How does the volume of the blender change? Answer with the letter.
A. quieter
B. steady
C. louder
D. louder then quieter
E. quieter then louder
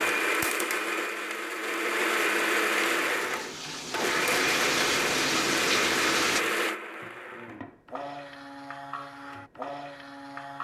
A.